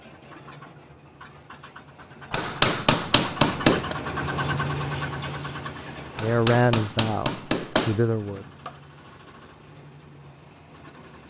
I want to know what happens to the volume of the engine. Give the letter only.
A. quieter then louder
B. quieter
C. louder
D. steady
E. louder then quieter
E.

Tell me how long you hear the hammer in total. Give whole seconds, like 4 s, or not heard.
4 s.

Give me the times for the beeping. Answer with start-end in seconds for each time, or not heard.
not heard.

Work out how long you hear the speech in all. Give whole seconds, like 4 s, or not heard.
2 s.